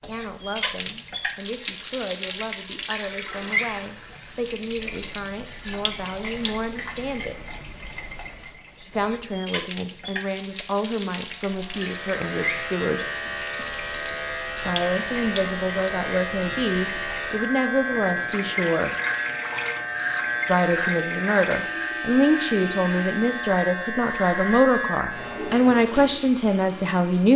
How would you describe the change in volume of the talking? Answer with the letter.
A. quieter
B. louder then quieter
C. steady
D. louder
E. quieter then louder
D.